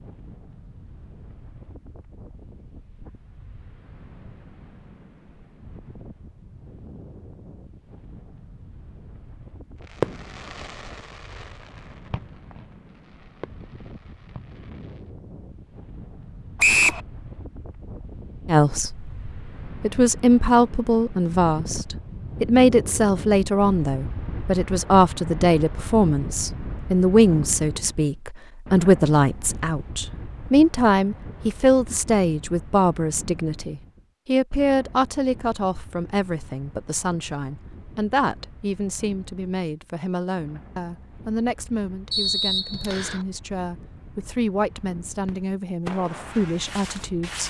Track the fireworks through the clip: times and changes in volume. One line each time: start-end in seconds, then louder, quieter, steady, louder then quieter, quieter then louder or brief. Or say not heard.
9.8-15.0 quieter
45.2-47.4 brief.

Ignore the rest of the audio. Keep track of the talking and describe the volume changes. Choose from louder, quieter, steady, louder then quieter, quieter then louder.
quieter.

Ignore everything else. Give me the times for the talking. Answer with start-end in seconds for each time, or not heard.
18.4-47.4.